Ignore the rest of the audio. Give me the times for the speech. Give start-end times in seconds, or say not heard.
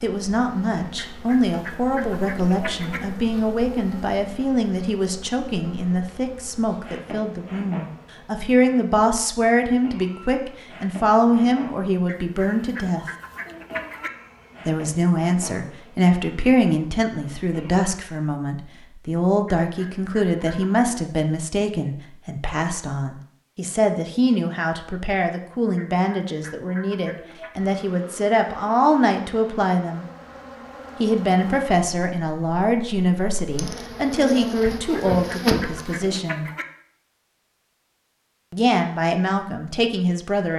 0.0-13.1, 14.7-30.1, 31.0-36.5, 38.5-40.5.